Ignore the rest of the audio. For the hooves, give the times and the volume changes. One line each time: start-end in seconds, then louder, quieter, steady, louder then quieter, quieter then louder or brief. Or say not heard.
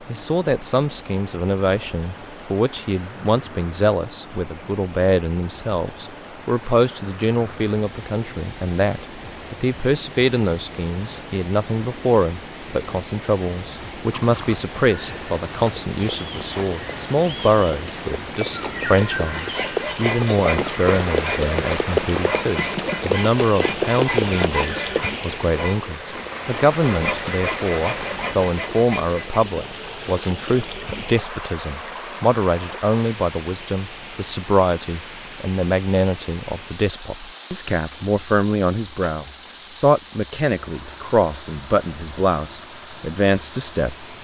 14.1-25.1 louder.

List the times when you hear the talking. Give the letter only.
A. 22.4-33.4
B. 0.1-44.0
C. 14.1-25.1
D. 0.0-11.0
B.